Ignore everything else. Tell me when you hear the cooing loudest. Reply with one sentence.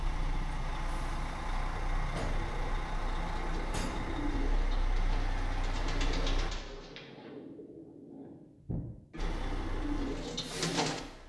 The loudest moment of the cooing is at 11 seconds.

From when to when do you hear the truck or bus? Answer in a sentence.
The truck or bus can be heard from 0.0 to 6.5 s and from 9.2 to 11.2 s.